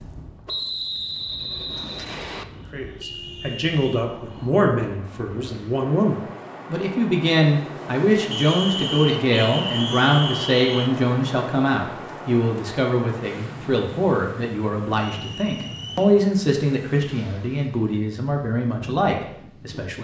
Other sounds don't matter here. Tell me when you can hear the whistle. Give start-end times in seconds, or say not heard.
0.5-2.5, 8.3-10.9, 14.9-16.1.